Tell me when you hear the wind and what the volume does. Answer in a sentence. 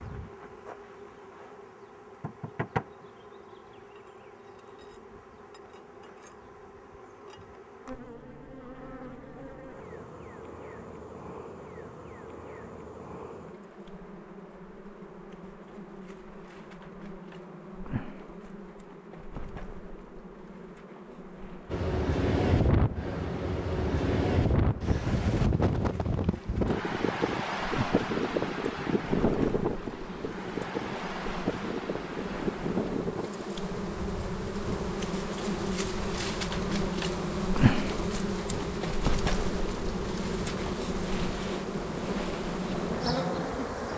The wind can be heard from 21.6 to 43.9 s, getting quieter.